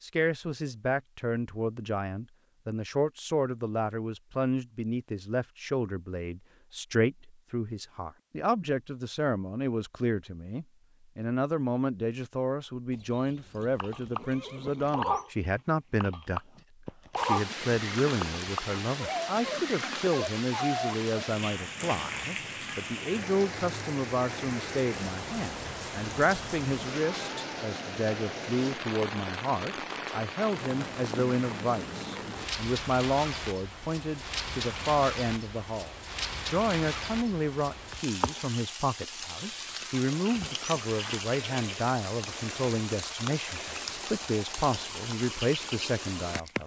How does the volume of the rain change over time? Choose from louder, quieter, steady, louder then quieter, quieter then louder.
steady.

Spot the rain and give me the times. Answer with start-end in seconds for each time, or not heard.
17.1-46.6.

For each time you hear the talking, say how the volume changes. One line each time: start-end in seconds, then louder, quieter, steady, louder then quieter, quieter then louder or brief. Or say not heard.
0.0-46.6 steady.